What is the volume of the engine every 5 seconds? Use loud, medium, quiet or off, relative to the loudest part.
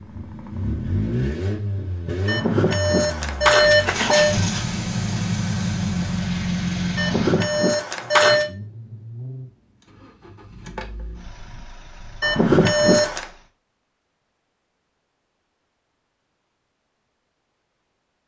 loud, loud, quiet, off.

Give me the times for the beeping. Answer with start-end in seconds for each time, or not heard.
2.2-4.3, 7.0-8.5, 12.2-13.2.